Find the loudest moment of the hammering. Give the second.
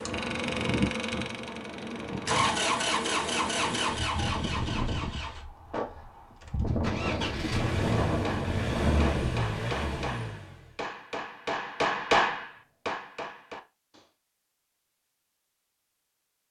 12 s.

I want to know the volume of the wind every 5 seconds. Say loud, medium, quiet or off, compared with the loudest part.
loud, loud, off, off.